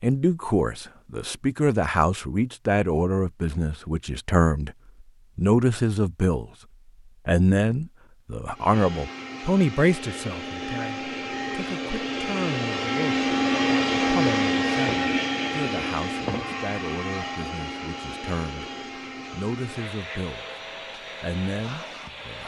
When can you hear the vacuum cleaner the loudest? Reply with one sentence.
The volume of the vacuum cleaner peaks at 14 seconds.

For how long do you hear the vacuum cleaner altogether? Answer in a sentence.
You can hear the vacuum cleaner for 14 seconds altogether.